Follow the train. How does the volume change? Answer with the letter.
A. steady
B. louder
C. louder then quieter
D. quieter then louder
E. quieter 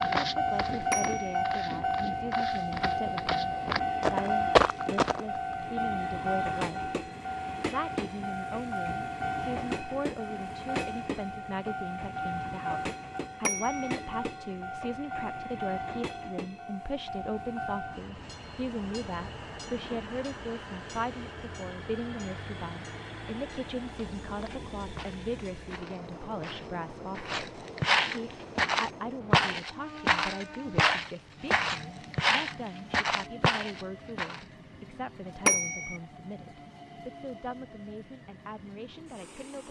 E.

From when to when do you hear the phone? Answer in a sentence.
You can hear the phone from 0.9 to 1.4 s, from 13.4 to 13.9 s and from 35.5 to 36.0 s.